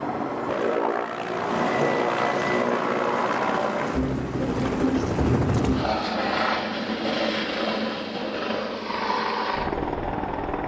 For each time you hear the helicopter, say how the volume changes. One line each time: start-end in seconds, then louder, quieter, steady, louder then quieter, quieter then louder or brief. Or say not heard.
0.0-10.6 steady.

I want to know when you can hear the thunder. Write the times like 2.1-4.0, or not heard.
5.0-6.0.